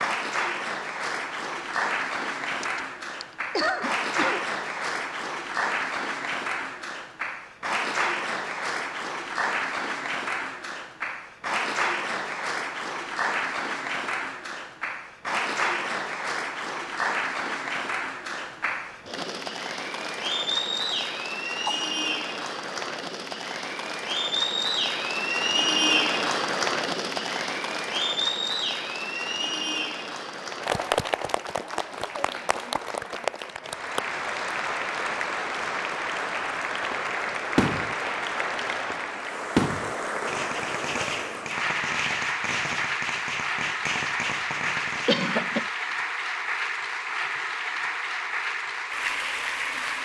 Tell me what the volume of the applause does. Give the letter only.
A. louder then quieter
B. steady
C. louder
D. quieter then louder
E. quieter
B.